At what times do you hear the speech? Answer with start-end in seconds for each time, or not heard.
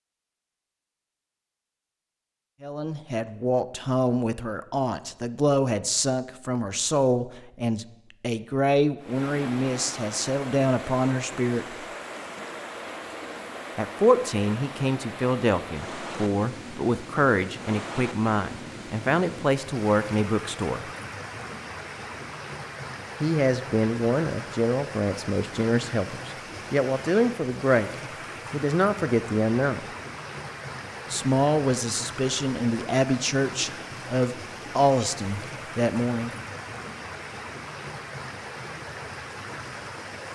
2.6-11.8, 13.8-20.9, 23.2-27.9, 28.5-29.9, 31.1-36.3.